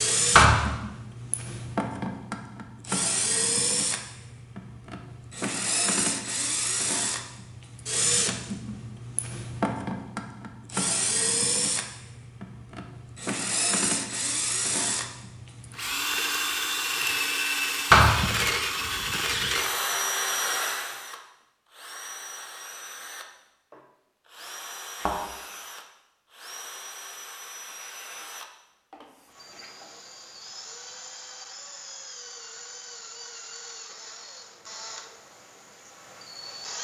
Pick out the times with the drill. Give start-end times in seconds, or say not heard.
0.0-36.7.